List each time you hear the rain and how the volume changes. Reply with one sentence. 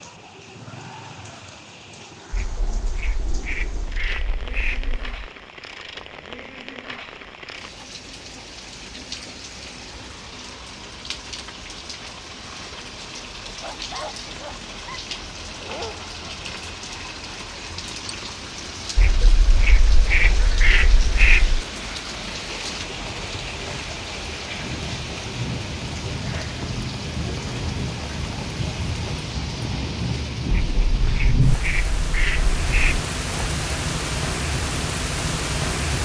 You can hear the rain from 0.0 to 36.0 s, getting louder.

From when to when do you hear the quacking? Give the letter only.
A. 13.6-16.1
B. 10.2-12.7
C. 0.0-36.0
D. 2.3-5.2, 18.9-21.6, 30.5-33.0
D.